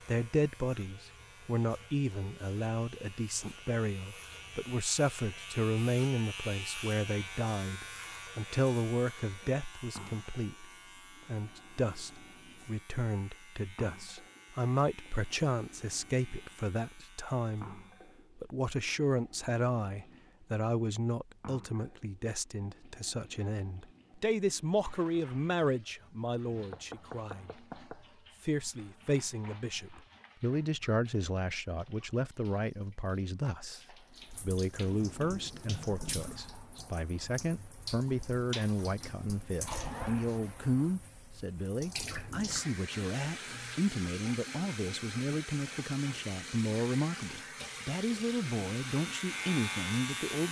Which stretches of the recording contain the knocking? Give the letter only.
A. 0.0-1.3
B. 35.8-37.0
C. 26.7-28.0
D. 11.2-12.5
C.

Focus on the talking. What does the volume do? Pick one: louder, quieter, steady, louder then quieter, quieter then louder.
steady.